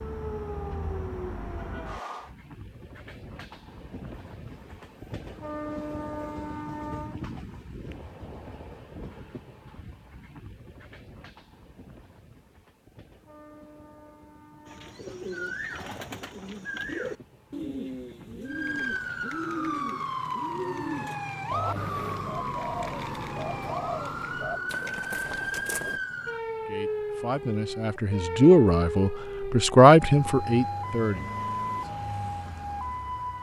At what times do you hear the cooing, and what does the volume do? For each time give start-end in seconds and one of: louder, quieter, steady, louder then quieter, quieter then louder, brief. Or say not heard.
14.7-26.0 steady.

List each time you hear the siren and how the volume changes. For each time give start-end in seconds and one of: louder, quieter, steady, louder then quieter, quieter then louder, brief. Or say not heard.
0.0-2.3 brief
18.4-33.3 steady.